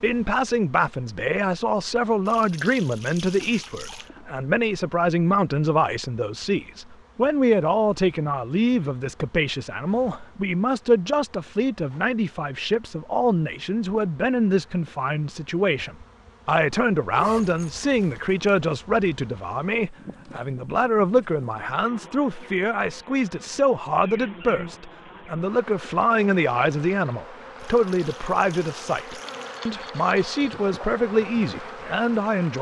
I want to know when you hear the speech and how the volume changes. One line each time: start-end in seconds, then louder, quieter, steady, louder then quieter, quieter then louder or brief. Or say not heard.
0.0-32.5 steady.